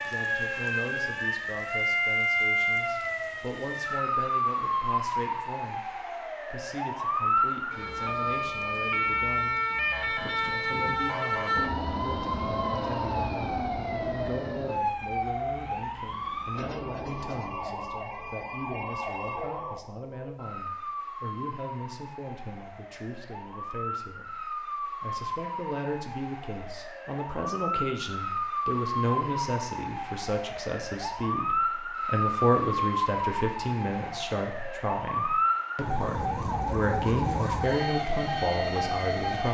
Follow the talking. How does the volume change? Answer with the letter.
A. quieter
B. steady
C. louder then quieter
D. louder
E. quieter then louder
D.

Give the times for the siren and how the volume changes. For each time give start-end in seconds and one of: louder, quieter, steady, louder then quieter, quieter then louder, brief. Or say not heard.
0.0-39.4 quieter then louder.